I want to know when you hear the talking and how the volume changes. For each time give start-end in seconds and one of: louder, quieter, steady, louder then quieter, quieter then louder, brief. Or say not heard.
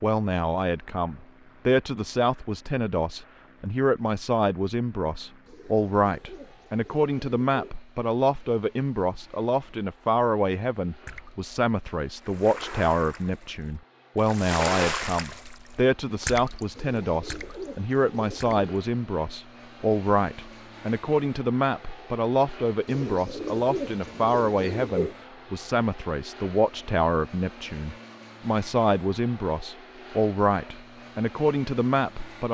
0.0-32.5 steady.